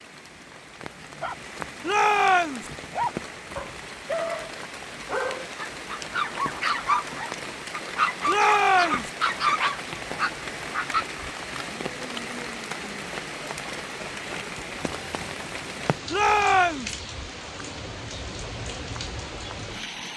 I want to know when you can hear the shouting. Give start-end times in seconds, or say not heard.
1.8-2.7, 8.2-9.1, 16.1-16.9.